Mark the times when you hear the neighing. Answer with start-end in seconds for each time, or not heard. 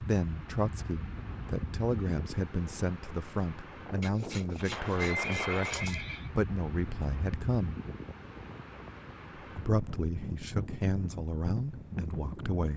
4.8-6.3.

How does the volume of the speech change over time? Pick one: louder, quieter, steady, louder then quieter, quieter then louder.
steady.